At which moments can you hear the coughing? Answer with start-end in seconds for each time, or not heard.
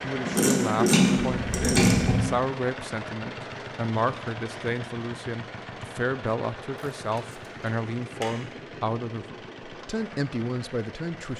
not heard.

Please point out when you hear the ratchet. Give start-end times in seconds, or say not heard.
0.2-2.2, 6.9-8.3.